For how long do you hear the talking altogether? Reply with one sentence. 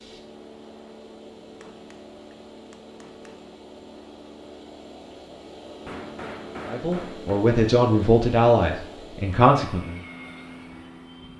The talking can be heard for 3 seconds in total.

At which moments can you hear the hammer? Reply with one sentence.
You can hear the hammer from 1.5 to 3.5 s and from 5.8 to 7.4 s.